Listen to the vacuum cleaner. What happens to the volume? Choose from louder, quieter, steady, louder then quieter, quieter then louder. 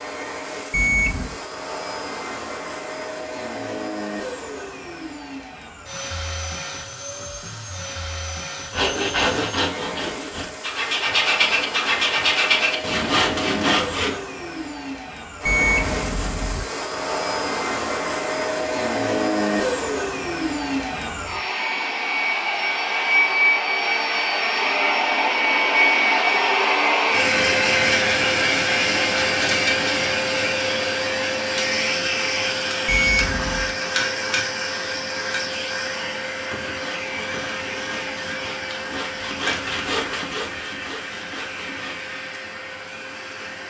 louder then quieter.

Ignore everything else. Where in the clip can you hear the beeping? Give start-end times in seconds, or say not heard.
0.7-1.4, 15.4-16.6, 32.9-33.8.